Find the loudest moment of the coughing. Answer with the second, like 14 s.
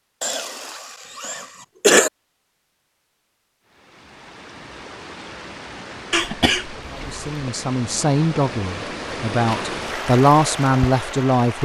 2 s.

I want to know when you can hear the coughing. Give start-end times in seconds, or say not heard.
0.2-2.1, 6.1-7.5.